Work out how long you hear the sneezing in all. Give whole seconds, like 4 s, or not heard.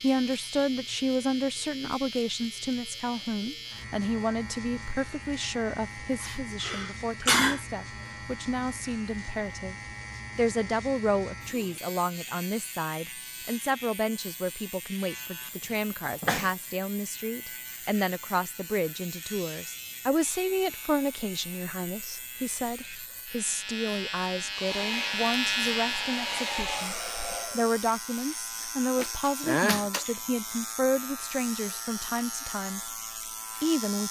3 s.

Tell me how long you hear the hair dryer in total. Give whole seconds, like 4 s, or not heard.
3 s.